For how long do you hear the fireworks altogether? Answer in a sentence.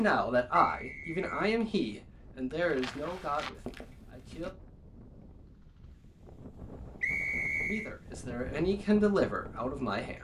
The fireworks can't be heard in this clip.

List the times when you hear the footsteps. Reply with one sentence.
The footsteps can be heard from 2.6 to 4.5 s.